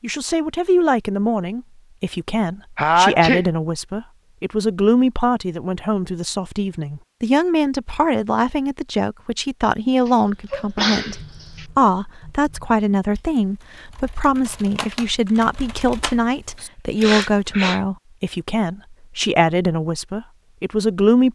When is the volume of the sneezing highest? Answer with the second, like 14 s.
3 s.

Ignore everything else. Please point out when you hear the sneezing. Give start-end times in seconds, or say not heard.
2.8-3.5, 10.1-11.7, 17.0-17.8.